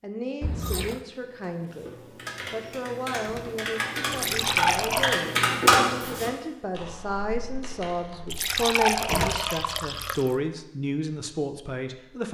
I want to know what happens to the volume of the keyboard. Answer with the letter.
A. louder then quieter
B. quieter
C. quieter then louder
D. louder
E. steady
A.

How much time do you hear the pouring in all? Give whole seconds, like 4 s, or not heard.
4 s.